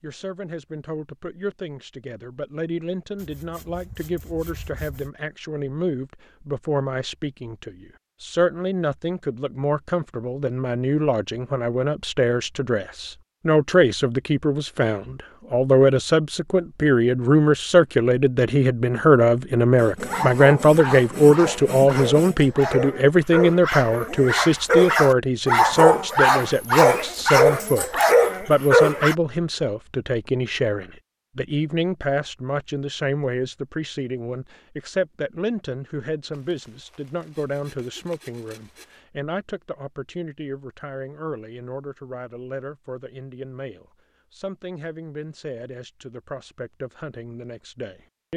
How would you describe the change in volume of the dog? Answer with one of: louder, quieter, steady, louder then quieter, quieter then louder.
louder.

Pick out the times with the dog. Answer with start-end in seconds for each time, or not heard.
20.1-29.1.